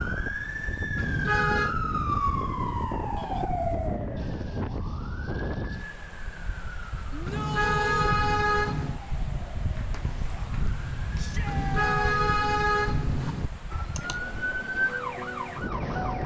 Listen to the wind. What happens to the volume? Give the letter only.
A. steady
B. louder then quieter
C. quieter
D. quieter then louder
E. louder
C.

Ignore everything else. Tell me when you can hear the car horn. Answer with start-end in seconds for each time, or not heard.
0.9-1.8, 7.2-9.0, 11.4-13.5.